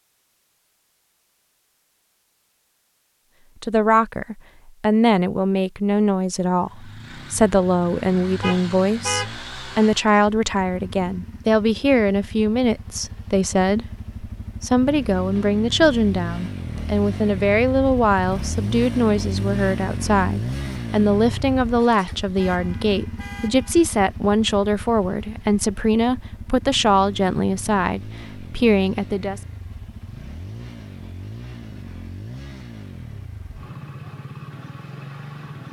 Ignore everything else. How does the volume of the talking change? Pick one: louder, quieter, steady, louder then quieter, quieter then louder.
steady.